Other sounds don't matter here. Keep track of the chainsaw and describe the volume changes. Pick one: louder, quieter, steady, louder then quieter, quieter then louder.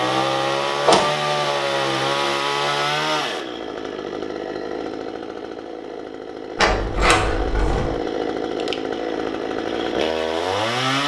quieter then louder.